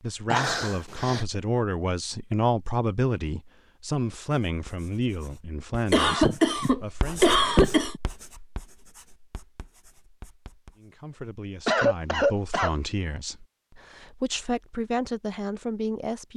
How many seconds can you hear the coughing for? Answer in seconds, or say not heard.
4 s.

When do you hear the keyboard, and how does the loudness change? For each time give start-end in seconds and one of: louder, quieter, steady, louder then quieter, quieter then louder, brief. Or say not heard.
not heard.